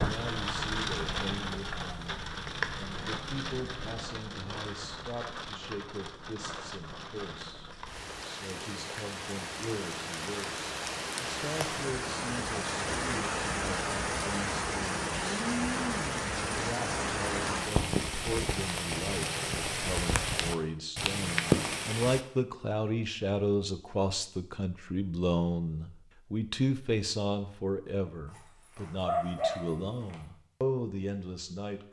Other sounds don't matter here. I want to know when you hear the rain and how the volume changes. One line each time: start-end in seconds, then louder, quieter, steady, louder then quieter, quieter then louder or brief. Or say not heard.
0.0-22.2 quieter then louder.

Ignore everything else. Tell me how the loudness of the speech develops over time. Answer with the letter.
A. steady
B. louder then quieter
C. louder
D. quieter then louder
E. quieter
C.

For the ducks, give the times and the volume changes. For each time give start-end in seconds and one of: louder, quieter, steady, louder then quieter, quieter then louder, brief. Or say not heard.
not heard.